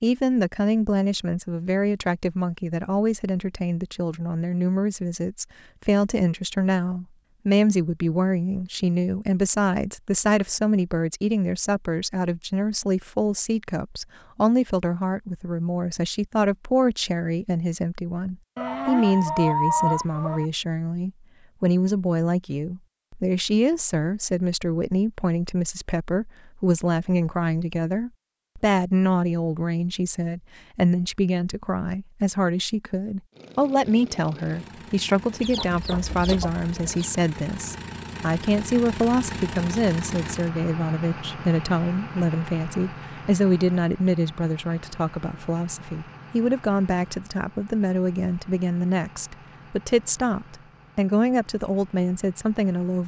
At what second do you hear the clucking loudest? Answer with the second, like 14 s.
20 s.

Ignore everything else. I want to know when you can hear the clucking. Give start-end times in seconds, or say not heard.
18.6-20.4, 35.4-37.1.